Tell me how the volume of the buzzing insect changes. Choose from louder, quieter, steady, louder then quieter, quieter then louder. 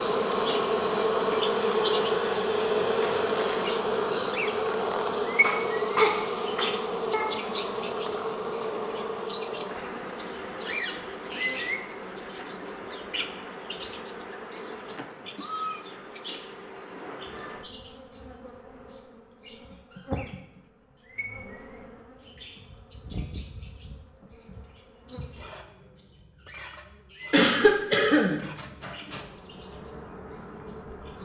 quieter.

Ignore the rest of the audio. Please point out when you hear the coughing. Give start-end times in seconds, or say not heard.
5.4-7.2, 27.3-29.2.